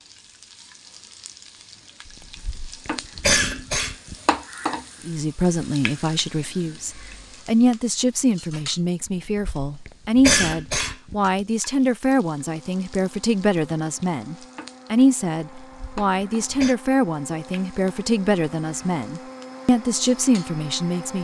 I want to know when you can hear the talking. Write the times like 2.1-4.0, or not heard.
5.0-21.1.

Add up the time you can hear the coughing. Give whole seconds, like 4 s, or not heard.
5 s.